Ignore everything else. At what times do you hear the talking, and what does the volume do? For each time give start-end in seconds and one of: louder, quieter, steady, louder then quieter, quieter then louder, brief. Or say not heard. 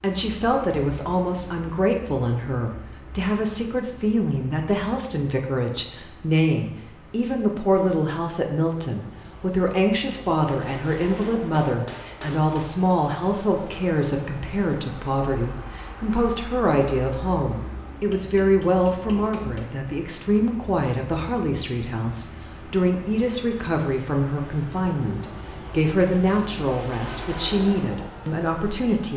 0.0-29.1 steady.